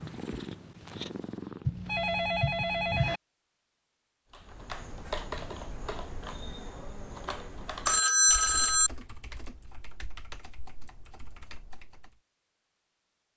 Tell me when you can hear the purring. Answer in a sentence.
You can hear the purring from 0.0 to 2.1 s.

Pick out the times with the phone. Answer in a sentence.
You can hear the phone from 1.6 to 3.2 s and from 7.8 to 8.9 s.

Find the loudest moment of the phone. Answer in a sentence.
The loudest moment of the phone is at 8 seconds.